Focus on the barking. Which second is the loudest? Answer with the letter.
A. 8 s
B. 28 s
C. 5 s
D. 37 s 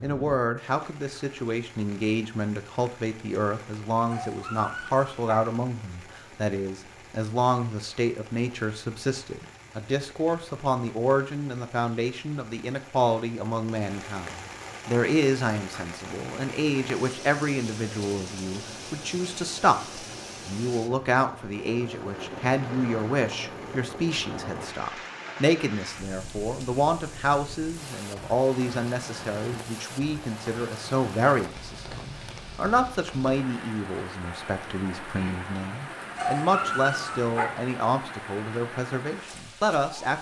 D.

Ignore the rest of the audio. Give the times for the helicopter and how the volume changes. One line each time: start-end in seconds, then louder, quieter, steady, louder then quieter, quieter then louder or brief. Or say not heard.
not heard.